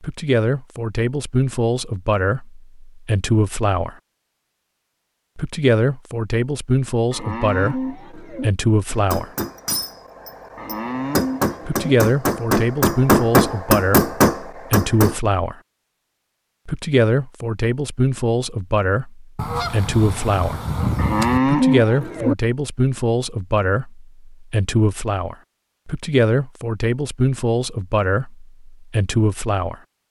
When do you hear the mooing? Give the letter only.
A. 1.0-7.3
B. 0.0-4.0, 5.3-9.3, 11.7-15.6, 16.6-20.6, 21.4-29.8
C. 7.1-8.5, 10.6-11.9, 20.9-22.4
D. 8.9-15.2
C.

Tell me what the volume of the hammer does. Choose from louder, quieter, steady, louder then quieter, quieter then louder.
louder.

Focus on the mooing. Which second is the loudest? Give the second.
22 s.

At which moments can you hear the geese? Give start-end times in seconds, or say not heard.
19.4-21.4.